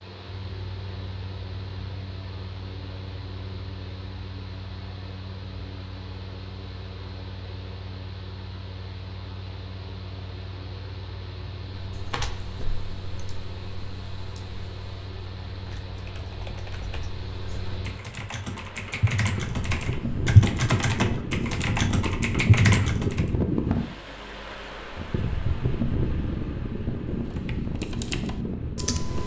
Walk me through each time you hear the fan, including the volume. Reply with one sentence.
You can hear the fan from 0.0 to 29.2 s, getting louder.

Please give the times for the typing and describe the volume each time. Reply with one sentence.
The typing can be heard from 11.9 to 23.2 s, getting louder; and briefly from 27.3 to 29.2 s.